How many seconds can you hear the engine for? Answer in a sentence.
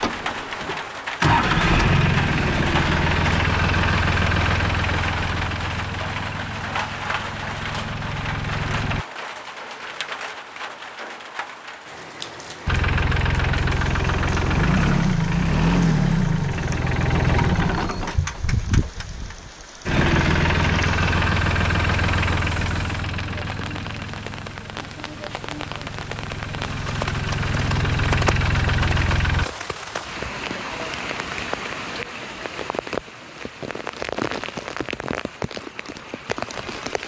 You can hear the engine for 26 seconds altogether.